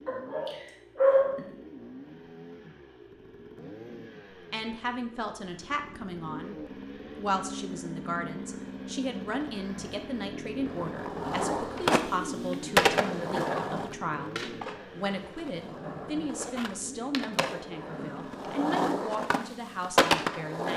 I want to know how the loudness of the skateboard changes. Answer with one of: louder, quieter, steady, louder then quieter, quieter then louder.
quieter then louder.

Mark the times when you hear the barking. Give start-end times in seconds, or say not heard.
0.1-1.6.